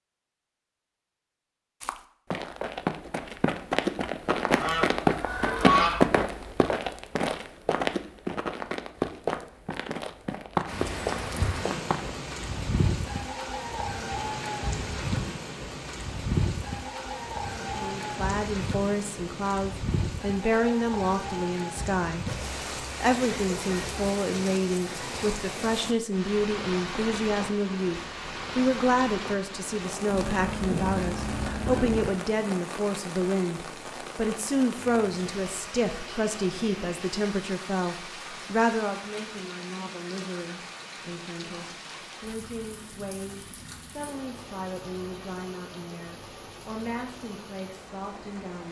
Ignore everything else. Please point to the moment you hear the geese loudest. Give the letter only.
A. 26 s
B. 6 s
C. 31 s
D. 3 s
B.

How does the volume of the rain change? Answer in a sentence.
The loudness of the rain goes down.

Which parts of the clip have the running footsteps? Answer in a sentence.
The running footsteps can be heard from 1.8 to 12.1 s.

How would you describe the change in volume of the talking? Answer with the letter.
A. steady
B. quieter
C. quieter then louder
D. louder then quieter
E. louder
B.